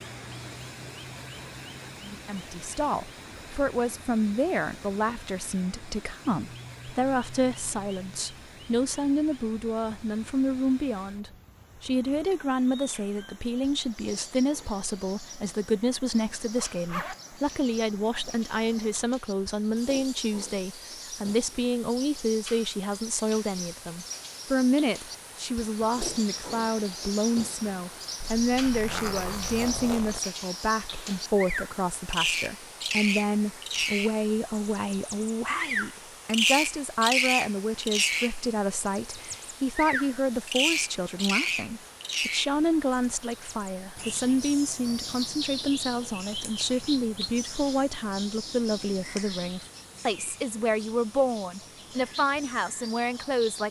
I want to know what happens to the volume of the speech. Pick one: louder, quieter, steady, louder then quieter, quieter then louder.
steady.